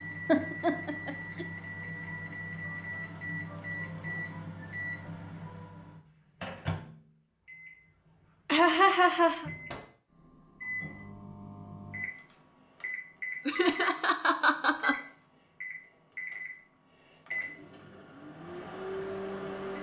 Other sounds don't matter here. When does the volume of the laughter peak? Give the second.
9 s.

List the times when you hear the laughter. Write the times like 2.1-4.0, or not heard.
0.2-1.4, 8.4-9.5, 13.4-14.9.